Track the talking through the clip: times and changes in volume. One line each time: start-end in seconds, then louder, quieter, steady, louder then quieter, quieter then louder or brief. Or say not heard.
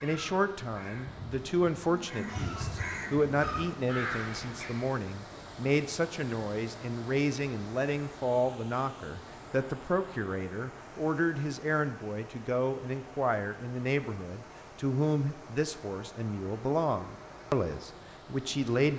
0.0-18.9 steady.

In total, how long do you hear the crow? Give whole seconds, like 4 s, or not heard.
5 s.